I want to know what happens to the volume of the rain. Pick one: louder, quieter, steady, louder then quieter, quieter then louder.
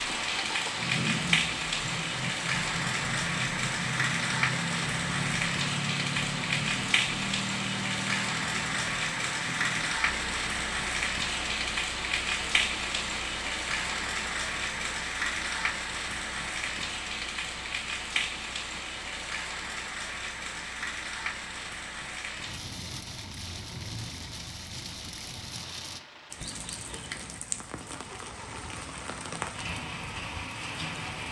quieter.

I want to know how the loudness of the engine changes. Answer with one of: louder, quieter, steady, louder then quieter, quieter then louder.
quieter.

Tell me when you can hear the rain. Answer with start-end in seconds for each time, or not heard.
0.0-31.2.